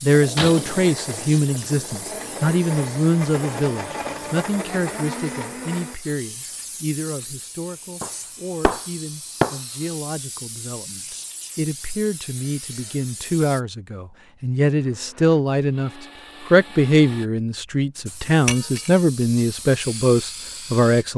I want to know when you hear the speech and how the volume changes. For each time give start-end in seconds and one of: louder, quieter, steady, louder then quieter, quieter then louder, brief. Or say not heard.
0.0-21.1 quieter then louder.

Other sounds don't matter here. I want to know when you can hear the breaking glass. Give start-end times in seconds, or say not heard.
0.3-1.1, 8.0-9.6, 18.4-18.9.